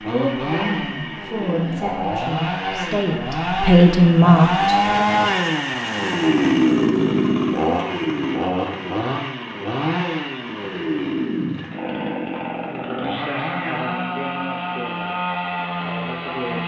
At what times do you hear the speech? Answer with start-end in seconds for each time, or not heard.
0.0-4.9.